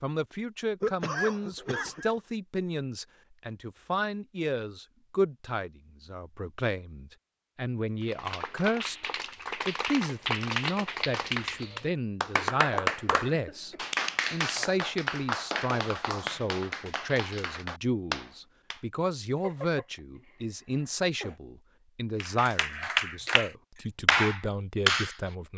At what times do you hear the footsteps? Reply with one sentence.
The footsteps can't be heard in this clip.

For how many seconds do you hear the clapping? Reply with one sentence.
The clapping can be heard for 14 seconds in total.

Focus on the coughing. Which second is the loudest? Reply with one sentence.
The loudest moment of the coughing is at 1 second.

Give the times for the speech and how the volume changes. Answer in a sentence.
You can hear the speech from 0.0 to 25.5 s, at a steady volume.